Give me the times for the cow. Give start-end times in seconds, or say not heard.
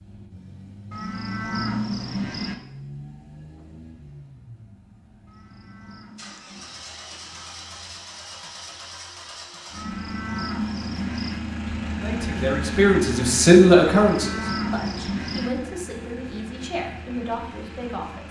0.9-2.5, 5.2-6.8, 9.8-11.4, 13.8-15.5.